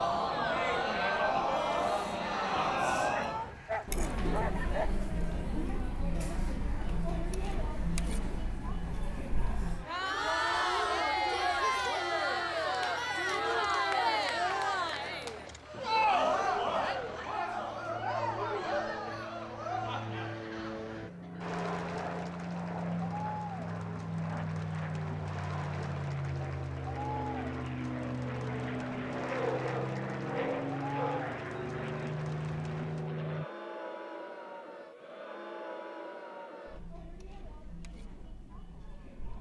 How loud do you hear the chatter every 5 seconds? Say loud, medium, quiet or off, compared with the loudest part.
loud, medium, loud, loud, quiet, quiet, quiet, quiet.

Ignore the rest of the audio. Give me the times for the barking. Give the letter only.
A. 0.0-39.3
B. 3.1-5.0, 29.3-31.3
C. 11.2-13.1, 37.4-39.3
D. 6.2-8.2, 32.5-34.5
B.